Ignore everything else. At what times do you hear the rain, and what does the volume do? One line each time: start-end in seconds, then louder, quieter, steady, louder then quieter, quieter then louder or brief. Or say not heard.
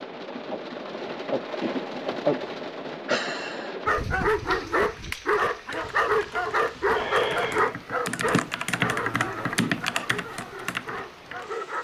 0.0-11.8 quieter.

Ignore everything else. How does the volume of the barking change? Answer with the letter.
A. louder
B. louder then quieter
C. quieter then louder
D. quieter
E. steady
D.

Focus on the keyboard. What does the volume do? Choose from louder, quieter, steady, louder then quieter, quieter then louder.
louder then quieter.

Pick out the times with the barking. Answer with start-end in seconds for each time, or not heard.
3.9-11.8.